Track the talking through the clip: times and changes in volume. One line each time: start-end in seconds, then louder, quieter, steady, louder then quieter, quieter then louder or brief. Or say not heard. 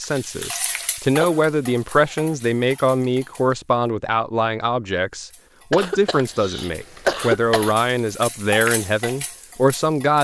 0.0-10.1 steady.